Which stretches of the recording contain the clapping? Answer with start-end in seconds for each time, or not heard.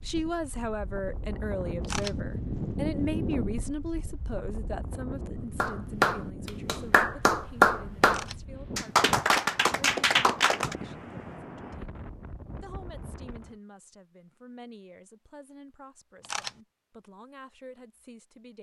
5.5-10.8.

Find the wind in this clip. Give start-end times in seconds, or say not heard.
0.0-13.6.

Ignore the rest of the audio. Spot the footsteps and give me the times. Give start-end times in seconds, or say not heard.
not heard.